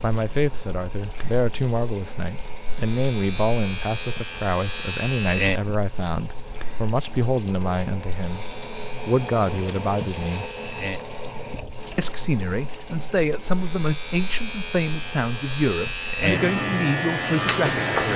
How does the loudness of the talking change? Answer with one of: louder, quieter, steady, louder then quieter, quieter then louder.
steady.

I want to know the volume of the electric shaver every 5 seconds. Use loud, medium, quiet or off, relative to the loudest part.
medium, medium, medium, loud.